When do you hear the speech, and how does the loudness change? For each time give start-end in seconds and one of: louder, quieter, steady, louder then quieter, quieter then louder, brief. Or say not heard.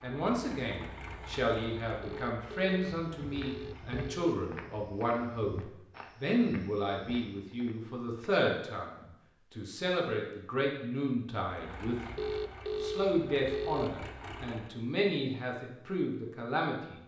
0.0-17.0 steady.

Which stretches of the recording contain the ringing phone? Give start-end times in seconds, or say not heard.
2.0-4.3, 12.2-14.1.